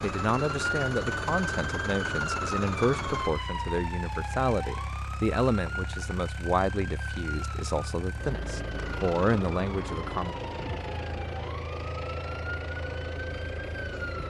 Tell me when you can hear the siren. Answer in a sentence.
The siren can be heard from 0.0 to 14.2 s.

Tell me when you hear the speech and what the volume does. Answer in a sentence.
You can hear the speech from 0.0 to 10.3 s, at a steady volume.